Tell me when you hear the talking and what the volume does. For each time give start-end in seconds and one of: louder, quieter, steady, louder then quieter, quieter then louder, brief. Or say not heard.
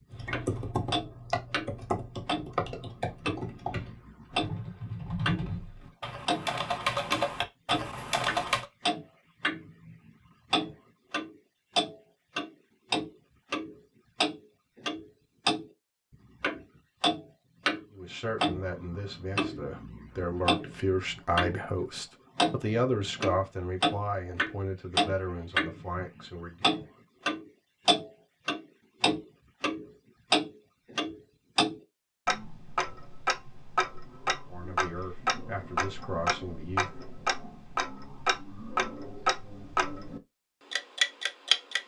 17.9-26.6 louder then quieter
34.5-37.0 brief.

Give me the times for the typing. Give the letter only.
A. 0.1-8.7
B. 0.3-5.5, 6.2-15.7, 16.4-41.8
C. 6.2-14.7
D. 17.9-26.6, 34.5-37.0
A.